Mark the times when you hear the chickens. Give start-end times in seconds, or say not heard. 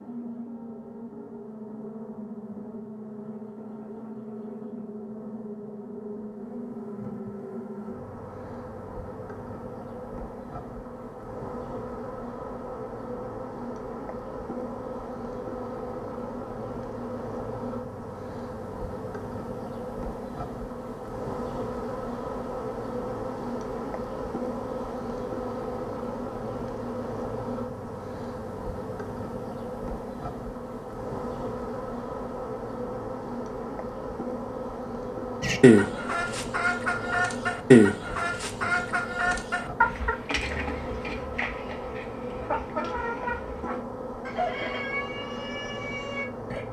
35.4-46.6.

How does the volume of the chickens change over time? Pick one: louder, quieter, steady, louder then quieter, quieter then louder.
quieter.